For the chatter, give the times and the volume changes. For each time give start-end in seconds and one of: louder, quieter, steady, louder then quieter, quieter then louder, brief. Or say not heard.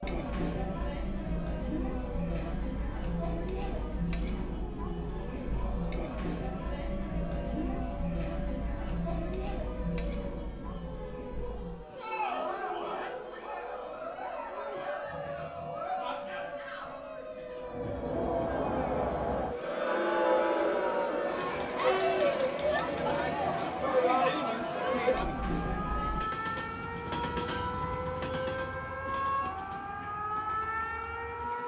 0.0-26.2 louder.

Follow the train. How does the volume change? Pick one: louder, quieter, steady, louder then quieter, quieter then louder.
quieter.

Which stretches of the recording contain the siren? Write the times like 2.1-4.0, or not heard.
0.1-31.6.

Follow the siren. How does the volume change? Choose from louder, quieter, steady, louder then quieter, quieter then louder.
louder.